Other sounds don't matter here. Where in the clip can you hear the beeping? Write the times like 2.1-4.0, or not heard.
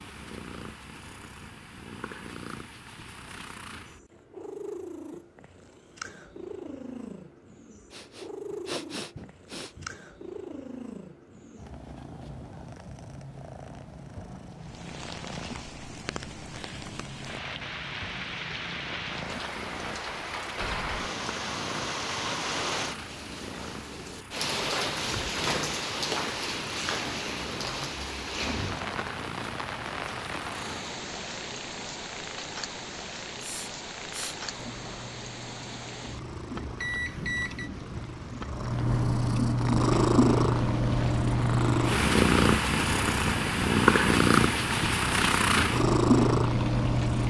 36.8-37.7.